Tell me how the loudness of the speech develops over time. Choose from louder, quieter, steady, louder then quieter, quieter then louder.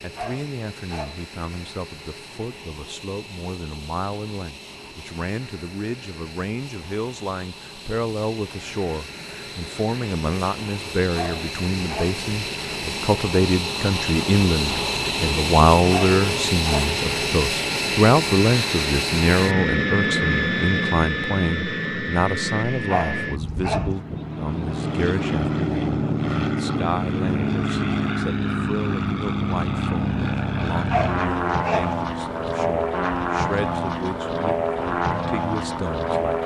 louder then quieter.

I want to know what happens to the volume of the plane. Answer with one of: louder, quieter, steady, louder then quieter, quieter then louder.
louder.